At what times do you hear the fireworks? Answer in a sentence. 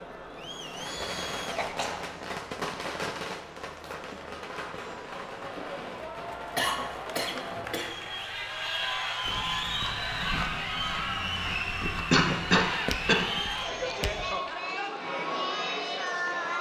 You can hear the fireworks from 0.5 to 8.3 s.